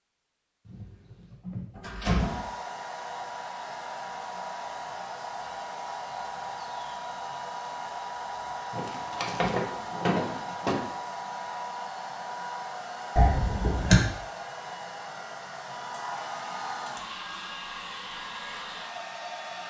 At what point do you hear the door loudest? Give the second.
14 s.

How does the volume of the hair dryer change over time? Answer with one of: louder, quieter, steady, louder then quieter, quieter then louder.
steady.